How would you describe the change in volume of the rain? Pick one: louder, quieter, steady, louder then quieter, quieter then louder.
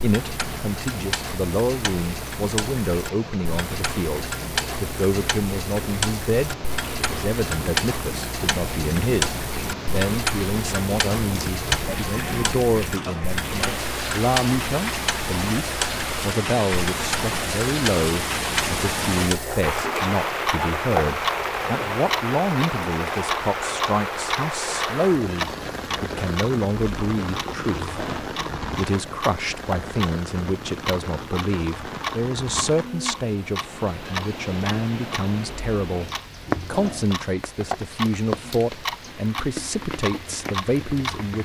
louder then quieter.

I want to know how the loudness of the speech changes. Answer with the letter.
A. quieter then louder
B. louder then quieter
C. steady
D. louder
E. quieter
C.